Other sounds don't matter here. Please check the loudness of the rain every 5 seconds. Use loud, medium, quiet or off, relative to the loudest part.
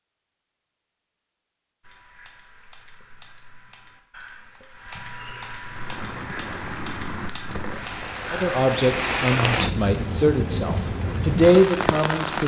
off, loud, loud.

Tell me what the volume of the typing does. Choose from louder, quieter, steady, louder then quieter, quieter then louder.
louder.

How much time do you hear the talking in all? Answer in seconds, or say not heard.
4 s.